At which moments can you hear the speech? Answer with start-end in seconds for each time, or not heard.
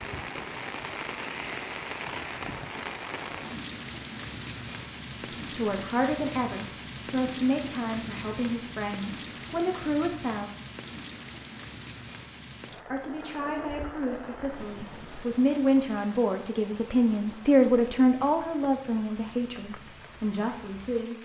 5.5-10.5, 12.9-21.1.